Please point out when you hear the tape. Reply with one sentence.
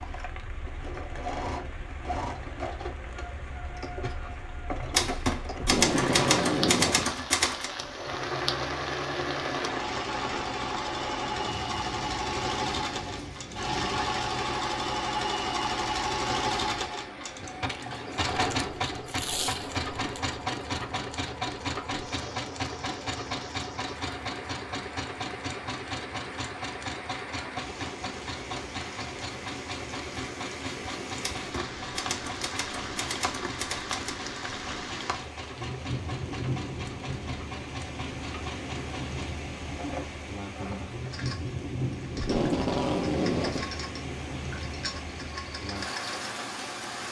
You can hear the tape from 5.5 to 7.2 s, from 19.1 to 20.2 s and from 42.1 to 43.7 s.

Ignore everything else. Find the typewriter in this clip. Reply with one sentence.
You can hear the typewriter from 4.9 to 7.7 s and from 31.2 to 34.1 s.